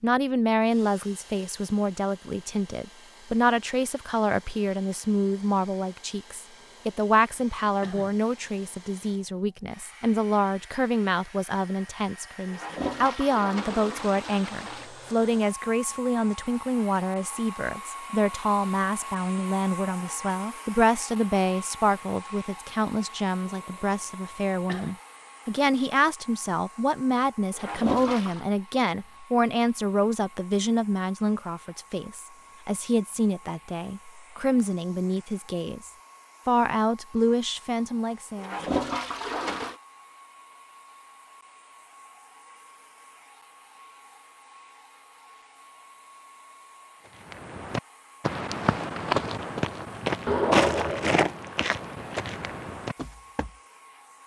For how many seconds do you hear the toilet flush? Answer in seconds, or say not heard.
5 s.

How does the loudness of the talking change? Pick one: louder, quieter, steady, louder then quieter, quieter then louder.
steady.